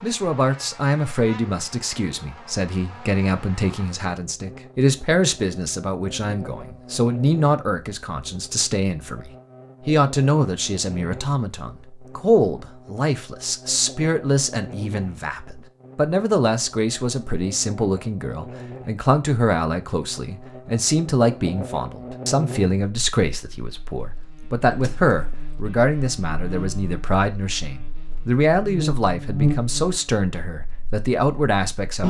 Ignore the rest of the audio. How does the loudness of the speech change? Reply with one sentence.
The loudness of the speech stays about the same.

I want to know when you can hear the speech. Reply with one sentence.
You can hear the speech from 0.0 to 32.0 s.